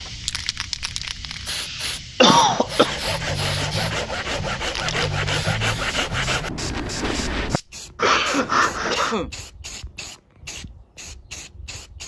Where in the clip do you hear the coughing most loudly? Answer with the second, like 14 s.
2 s.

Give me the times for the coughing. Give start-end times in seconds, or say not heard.
1.6-3.0, 8.0-9.3.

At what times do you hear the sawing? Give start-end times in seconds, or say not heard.
2.6-9.2.